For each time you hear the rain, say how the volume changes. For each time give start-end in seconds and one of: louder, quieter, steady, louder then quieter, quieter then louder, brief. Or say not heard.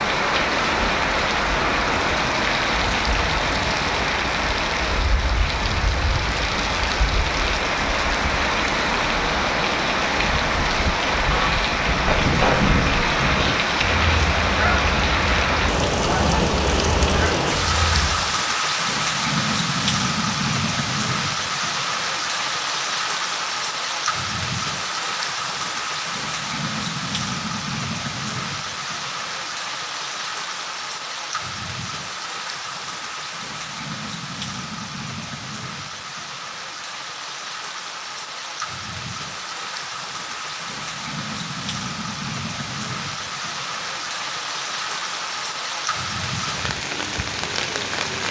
0.0-48.2 quieter.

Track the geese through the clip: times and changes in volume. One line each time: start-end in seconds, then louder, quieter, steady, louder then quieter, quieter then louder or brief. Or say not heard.
11.2-18.2 quieter.